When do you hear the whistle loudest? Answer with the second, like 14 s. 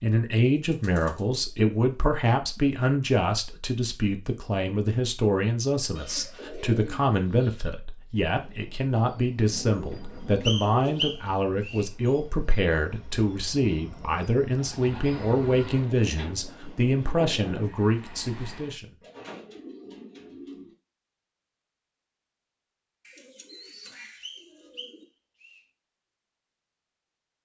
11 s.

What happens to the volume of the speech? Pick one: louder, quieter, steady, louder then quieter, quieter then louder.
steady.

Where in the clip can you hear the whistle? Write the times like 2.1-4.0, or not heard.
10.4-11.8, 24.2-25.6.